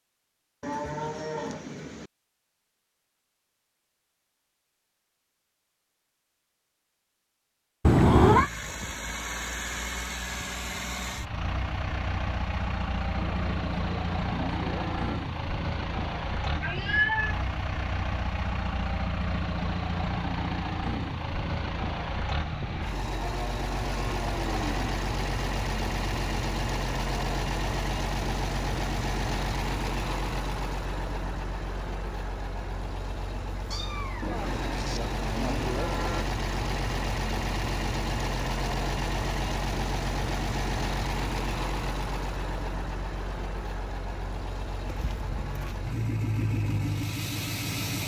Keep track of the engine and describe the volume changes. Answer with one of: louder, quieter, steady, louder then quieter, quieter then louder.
steady.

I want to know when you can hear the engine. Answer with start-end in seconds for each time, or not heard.
8.2-48.0.